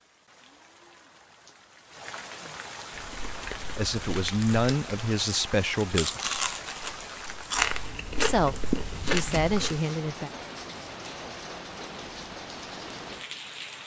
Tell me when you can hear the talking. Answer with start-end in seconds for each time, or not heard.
3.8-6.4, 8.2-10.3.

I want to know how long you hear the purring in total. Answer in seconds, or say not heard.
not heard.